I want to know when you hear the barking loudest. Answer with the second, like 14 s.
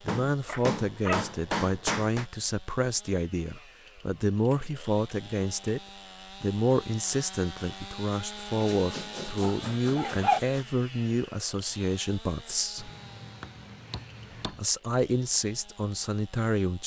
10 s.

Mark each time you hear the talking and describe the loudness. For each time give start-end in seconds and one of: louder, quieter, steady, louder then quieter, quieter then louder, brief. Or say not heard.
0.1-5.8 steady
6.4-12.9 steady
14.4-16.8 brief.